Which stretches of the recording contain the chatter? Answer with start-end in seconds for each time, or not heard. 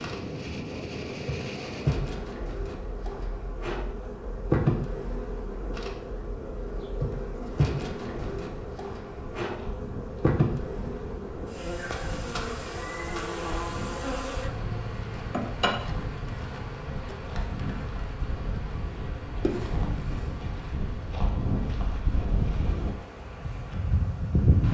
not heard.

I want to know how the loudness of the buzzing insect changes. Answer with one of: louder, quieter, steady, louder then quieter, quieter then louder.
quieter.